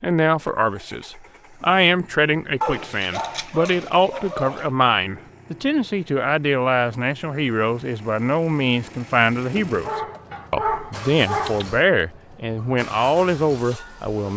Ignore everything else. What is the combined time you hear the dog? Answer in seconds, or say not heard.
4 s.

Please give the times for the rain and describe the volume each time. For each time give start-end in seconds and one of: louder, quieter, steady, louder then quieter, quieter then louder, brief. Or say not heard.
not heard.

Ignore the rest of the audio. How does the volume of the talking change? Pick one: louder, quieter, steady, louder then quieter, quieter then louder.
steady.